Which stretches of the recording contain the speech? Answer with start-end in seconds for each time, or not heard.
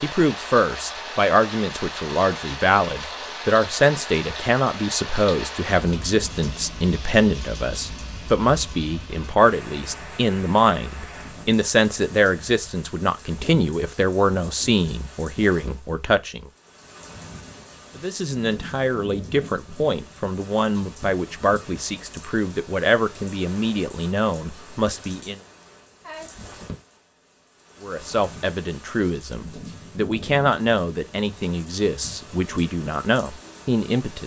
0.0-16.4, 17.9-25.4, 27.8-34.2.